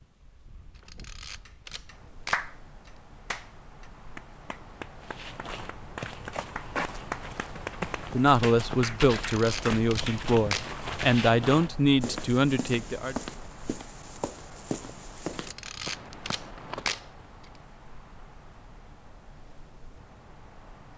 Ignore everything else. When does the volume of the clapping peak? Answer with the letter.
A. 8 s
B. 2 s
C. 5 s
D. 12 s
B.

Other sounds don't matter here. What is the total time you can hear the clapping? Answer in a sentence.
The clapping can be heard for 9 seconds in total.